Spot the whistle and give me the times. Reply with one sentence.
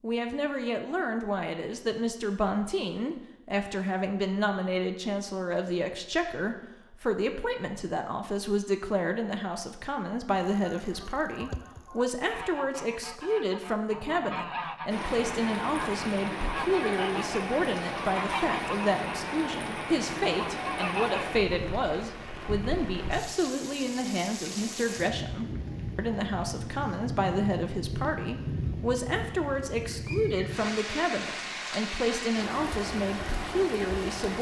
You can't hear the whistle here.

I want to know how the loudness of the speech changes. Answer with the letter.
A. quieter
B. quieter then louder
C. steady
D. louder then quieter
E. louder
C.